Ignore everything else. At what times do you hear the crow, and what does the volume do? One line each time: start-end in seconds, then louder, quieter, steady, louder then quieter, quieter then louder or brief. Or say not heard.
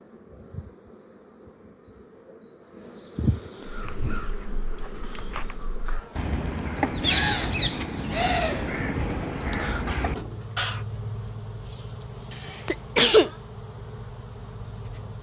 3.6-10.8 louder then quieter.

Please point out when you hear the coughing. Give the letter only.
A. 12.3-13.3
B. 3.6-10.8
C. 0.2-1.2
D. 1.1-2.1
A.